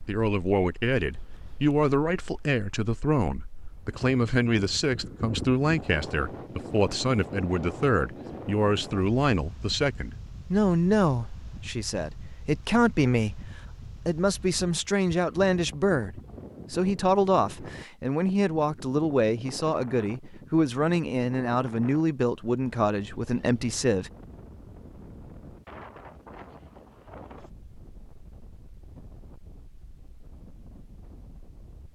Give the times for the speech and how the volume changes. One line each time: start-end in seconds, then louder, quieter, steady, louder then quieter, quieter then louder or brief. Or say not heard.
0.1-24.1 steady.